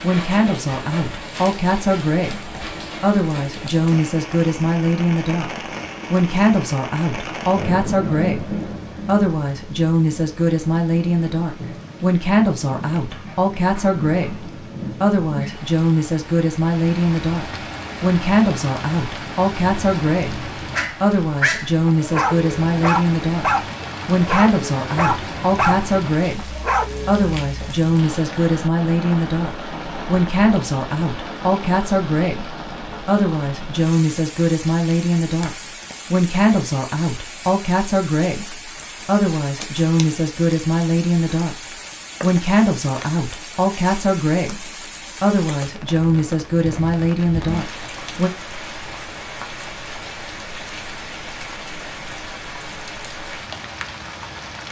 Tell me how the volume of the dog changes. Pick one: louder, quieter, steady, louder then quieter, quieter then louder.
steady.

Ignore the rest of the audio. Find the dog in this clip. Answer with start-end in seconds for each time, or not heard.
20.8-27.2.